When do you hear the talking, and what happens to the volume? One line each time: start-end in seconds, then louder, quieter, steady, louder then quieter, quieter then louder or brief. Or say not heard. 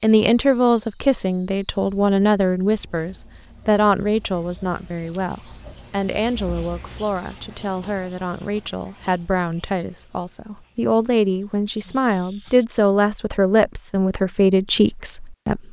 0.0-15.6 quieter then louder.